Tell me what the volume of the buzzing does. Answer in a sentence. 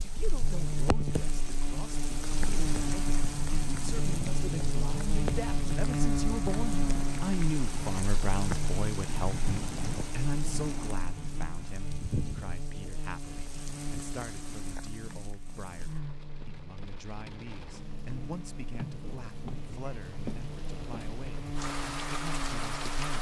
The loudness of the buzzing goes down.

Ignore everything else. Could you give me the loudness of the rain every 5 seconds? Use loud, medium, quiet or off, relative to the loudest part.
loud, loud, medium, medium, loud.